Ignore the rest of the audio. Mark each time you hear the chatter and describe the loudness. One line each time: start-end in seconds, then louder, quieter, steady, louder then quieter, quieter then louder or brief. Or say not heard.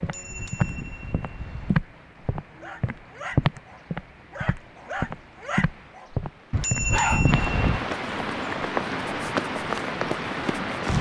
not heard.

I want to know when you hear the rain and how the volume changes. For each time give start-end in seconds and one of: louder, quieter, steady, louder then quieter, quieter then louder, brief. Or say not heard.
0.0-10.9 louder.